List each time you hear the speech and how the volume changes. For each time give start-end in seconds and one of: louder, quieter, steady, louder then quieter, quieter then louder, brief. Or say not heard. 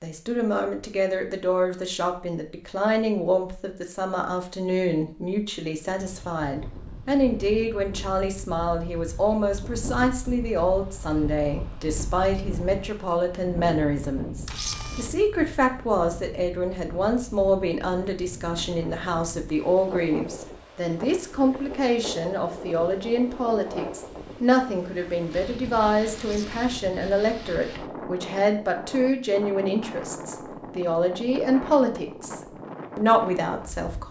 0.0-34.0 steady.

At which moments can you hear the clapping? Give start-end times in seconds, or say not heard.
not heard.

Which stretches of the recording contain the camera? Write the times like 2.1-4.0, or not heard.
14.4-15.1, 26.1-26.6.